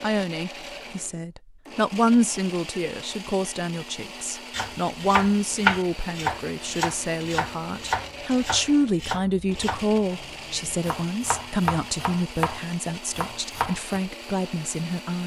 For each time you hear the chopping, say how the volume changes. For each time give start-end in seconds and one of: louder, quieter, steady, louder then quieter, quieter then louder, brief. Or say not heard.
4.5-14.0 quieter.